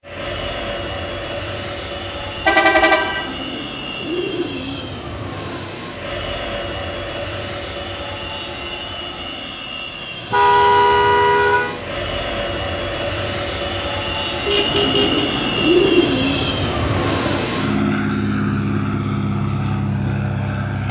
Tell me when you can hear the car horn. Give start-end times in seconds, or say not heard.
2.4-3.3, 10.3-11.8, 14.4-15.2.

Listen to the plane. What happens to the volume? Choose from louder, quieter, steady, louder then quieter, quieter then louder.
louder.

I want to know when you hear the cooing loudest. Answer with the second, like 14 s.
16 s.